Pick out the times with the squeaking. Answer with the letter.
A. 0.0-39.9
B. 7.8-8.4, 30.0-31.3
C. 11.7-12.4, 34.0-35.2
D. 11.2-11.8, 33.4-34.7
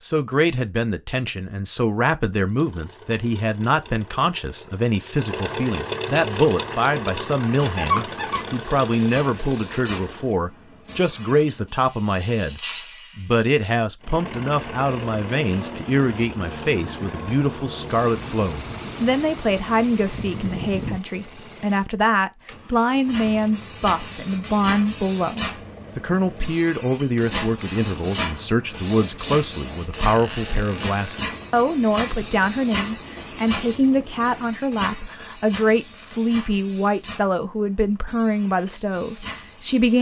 B.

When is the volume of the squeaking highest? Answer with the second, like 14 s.
8 s.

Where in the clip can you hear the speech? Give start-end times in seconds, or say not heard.
0.0-39.9.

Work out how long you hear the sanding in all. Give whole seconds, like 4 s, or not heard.
not heard.